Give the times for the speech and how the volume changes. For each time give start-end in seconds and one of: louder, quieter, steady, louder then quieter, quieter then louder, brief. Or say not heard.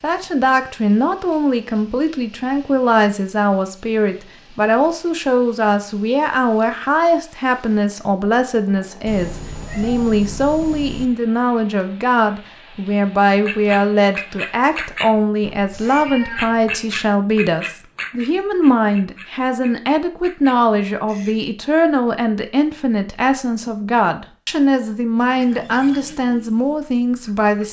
0.0-27.6 steady.